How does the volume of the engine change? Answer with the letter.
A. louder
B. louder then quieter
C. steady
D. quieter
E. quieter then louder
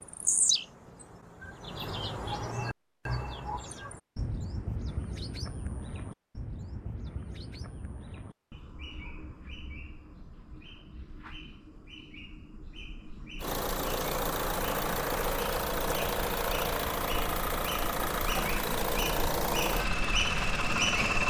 C.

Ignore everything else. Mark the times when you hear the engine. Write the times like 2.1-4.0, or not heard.
13.4-21.2.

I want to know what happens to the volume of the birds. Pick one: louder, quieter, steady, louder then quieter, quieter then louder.
quieter then louder.